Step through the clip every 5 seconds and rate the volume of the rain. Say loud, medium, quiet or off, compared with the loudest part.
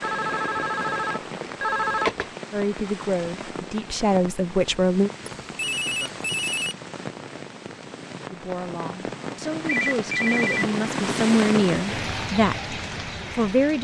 medium, medium, loud.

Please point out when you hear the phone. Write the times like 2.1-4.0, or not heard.
0.0-2.2, 5.2-6.8, 9.7-10.7.